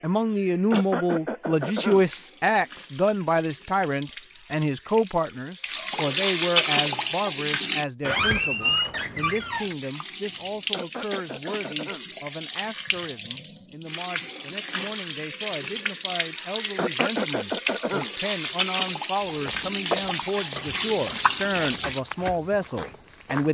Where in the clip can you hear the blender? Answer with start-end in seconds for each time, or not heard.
not heard.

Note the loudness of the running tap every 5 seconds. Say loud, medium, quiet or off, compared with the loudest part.
quiet, loud, medium, loud, loud.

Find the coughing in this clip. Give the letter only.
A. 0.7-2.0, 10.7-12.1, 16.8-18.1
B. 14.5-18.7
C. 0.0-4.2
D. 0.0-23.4
A.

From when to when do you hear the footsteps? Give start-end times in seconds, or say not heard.
19.2-23.4.